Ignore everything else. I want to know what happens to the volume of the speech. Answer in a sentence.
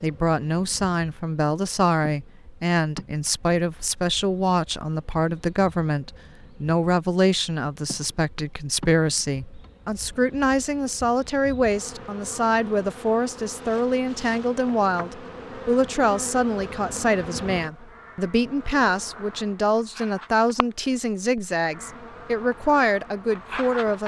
The volume of the speech stays about the same.